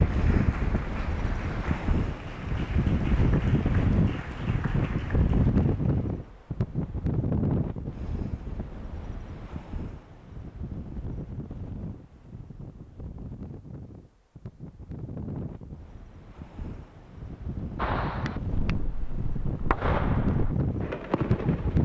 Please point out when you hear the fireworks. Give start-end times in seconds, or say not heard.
17.8-21.8.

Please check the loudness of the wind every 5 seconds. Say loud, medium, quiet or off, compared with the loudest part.
loud, loud, quiet, medium, loud.